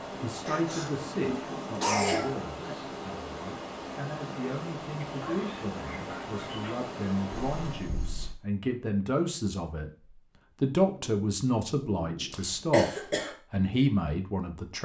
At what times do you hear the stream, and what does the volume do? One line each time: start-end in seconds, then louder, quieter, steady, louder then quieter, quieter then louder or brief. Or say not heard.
0.0-8.0 steady.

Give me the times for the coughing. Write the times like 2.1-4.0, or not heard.
0.5-2.4, 7.3-8.3, 12.3-13.3.